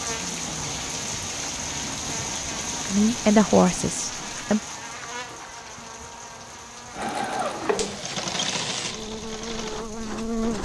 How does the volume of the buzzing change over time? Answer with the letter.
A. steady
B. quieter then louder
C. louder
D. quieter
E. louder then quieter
C.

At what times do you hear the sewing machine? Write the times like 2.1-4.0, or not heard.
6.9-10.6.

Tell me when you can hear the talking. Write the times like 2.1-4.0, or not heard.
2.9-4.6.